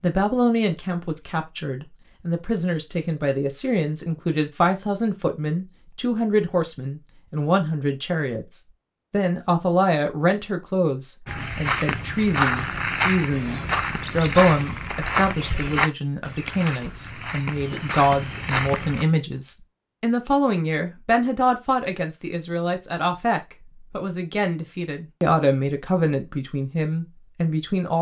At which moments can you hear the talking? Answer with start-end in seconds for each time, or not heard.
0.0-27.9.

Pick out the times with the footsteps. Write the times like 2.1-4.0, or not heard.
11.2-19.1.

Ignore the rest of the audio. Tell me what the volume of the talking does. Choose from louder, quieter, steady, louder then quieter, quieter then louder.
steady.